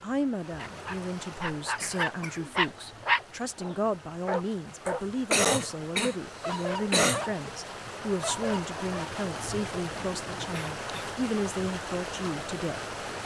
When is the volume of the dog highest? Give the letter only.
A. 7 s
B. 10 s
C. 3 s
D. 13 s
C.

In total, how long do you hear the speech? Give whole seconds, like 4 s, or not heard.
13 s.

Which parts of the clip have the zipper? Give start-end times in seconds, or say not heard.
not heard.